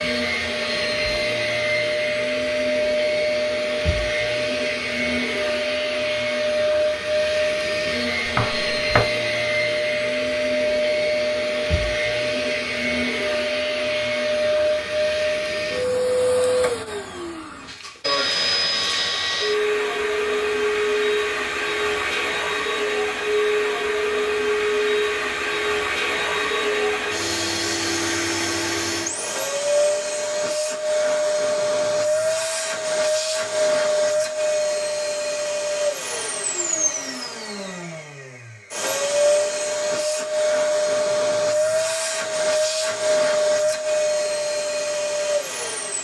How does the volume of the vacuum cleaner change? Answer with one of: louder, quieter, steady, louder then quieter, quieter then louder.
steady.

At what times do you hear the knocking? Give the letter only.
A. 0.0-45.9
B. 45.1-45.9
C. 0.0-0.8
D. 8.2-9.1
D.